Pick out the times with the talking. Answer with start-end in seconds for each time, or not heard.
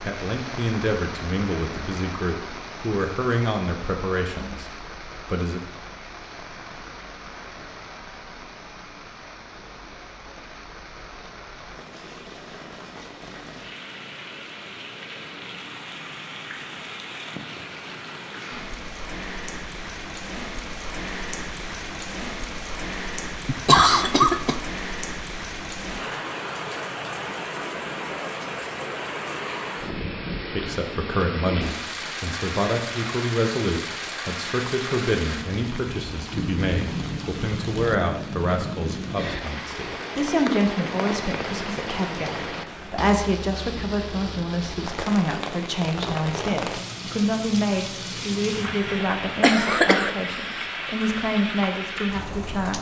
0.0-5.6, 30.4-52.7.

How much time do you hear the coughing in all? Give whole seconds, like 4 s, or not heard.
3 s.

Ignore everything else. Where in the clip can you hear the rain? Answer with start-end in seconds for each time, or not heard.
0.0-52.7.